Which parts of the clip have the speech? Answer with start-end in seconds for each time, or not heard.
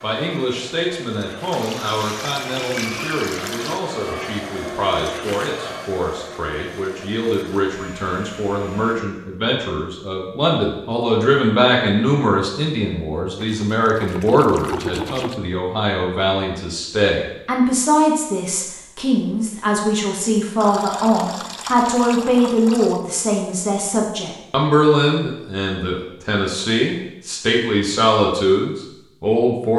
0.0-29.7.